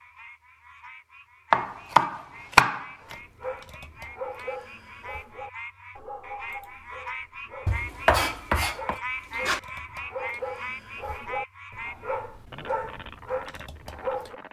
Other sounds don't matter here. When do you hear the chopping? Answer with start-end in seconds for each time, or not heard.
1.5-3.1, 7.7-9.6.